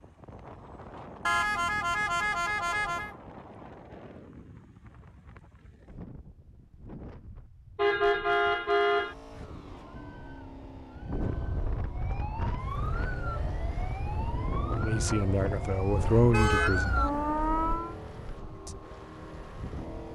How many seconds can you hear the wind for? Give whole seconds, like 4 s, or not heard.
20 s.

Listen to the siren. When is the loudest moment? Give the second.
17 s.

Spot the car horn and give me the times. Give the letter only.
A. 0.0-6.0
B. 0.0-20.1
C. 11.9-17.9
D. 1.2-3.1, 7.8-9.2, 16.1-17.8
D.